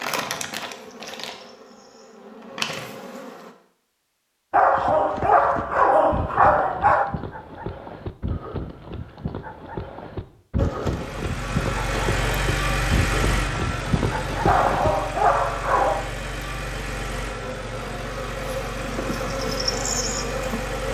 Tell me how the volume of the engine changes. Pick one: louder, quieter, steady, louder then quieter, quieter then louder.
quieter.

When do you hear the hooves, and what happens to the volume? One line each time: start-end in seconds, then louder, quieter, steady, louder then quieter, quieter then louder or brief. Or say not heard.
4.5-14.9 louder.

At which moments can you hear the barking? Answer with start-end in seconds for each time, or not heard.
4.5-7.0, 14.4-16.0.